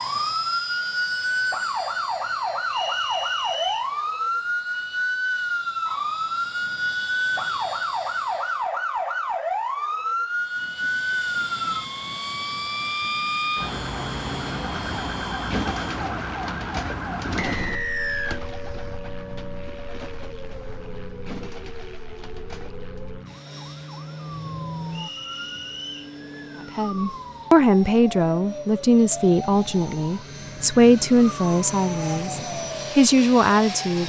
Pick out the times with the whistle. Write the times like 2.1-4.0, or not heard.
2.7-3.9, 17.4-18.4, 24.9-26.1.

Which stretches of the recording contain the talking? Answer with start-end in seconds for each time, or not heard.
26.8-34.0.